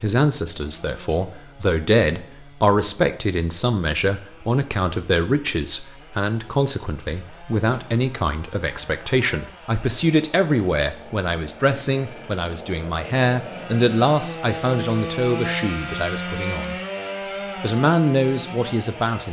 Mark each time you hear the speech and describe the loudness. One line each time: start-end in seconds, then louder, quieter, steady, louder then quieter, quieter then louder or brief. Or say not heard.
0.0-16.8 steady
17.6-19.2 brief.